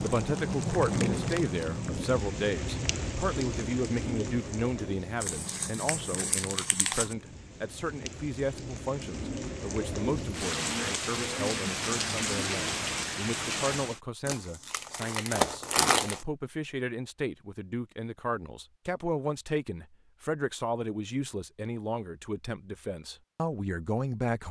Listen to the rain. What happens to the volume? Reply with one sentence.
The volume of the rain goes down, then up.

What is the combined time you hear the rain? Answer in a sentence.
The rain can be heard for 14 seconds in total.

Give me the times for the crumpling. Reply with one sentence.
You can hear the crumpling from 5.2 to 7.2 s and from 14.2 to 16.2 s.